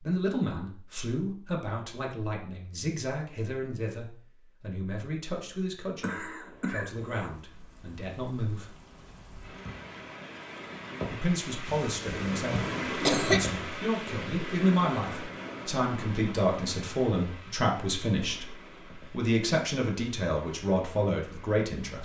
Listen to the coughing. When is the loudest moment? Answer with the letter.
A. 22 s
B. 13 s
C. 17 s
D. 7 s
B.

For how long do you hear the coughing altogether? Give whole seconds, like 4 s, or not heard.
3 s.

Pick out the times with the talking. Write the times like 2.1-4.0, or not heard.
0.0-8.8, 11.1-22.0.